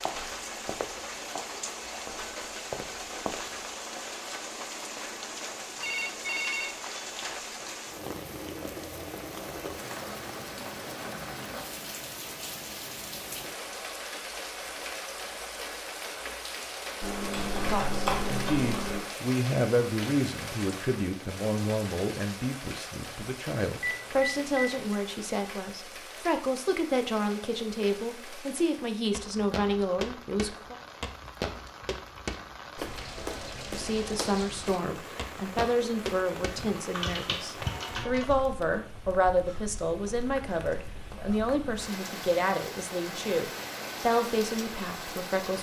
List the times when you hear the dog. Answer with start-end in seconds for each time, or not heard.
not heard.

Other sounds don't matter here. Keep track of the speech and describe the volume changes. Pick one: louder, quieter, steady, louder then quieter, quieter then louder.
steady.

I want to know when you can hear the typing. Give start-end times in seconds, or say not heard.
17.0-19.1, 36.5-38.4.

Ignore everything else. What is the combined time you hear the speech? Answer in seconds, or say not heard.
25 s.